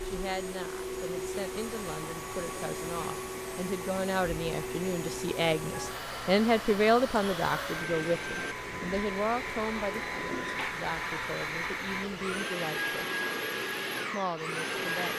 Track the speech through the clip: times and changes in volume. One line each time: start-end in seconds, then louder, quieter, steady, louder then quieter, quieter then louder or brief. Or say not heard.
0.0-13.1 louder then quieter
14.1-15.1 brief.